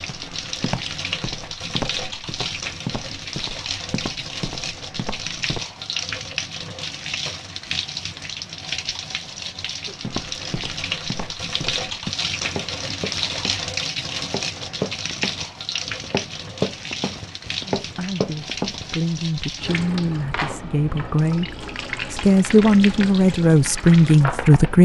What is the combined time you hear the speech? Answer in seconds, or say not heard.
7 s.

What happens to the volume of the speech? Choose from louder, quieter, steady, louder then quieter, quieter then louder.
louder.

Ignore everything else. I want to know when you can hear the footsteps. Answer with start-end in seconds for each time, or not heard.
0.0-5.6, 10.0-18.9.